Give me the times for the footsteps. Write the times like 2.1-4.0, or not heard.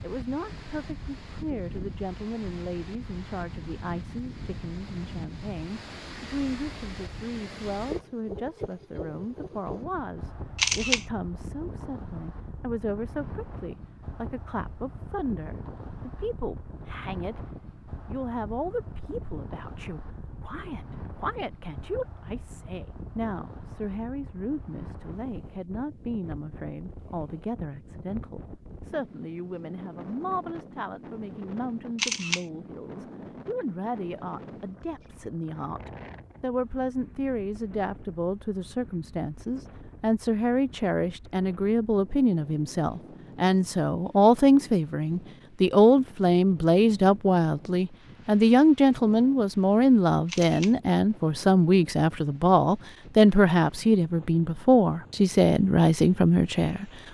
not heard.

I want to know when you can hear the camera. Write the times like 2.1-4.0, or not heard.
10.6-11.1, 31.9-32.5, 50.2-50.8.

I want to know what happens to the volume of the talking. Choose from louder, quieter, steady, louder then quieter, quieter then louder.
louder.